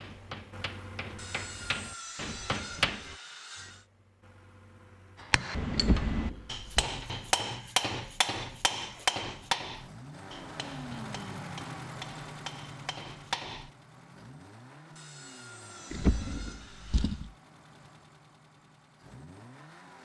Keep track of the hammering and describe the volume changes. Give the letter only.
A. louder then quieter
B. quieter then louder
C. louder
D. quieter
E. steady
A.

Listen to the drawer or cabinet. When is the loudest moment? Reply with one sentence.
The loudest moment of the drawer or cabinet is at 16 seconds.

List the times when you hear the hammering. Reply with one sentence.
The hammering can be heard from 0.0 to 3.1 s and from 5.2 to 13.7 s.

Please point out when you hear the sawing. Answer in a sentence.
You can hear the sawing from 1.1 to 3.9 s and from 14.9 to 17.3 s.